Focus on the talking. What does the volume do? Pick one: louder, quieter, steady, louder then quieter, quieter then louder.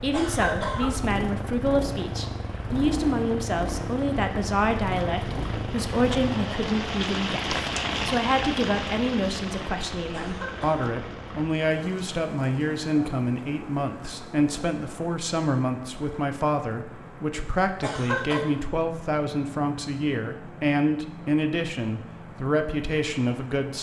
steady.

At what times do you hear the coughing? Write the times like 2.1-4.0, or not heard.
0.1-0.9, 10.1-10.9, 17.8-18.4.